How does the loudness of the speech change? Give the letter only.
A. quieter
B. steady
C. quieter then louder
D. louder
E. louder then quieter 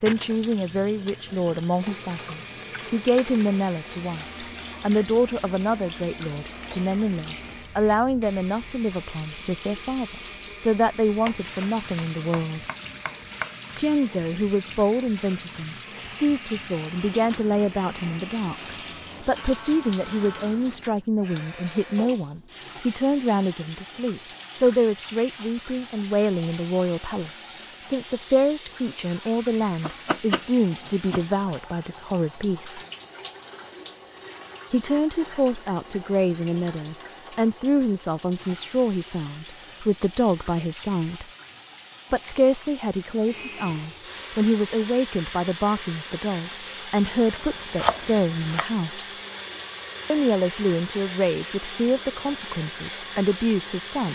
B.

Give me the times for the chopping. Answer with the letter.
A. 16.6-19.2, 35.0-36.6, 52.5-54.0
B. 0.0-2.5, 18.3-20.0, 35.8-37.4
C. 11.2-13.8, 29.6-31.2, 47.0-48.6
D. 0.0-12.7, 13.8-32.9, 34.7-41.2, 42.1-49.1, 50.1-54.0
C.